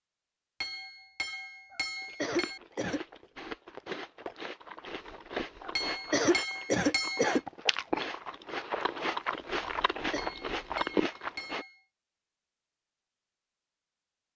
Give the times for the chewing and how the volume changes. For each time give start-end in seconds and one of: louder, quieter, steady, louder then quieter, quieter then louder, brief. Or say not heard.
2.0-11.7 louder.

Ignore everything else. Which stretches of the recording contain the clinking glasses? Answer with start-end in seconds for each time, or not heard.
0.6-2.6, 5.8-7.4, 10.2-11.8.